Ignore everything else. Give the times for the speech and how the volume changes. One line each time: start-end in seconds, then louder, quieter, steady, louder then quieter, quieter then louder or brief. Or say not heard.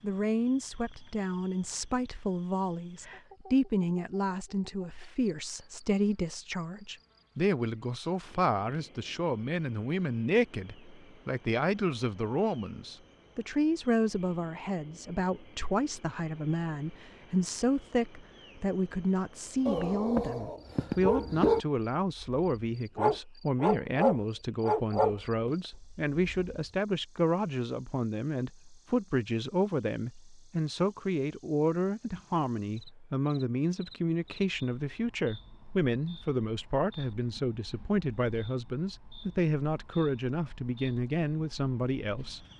0.0-42.5 steady.